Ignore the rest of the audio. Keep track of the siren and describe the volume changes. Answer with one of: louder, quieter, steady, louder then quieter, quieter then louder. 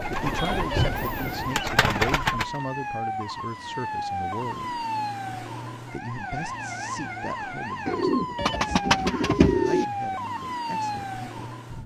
steady.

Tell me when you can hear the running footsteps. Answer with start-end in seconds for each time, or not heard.
not heard.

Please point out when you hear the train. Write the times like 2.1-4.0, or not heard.
0.0-1.6.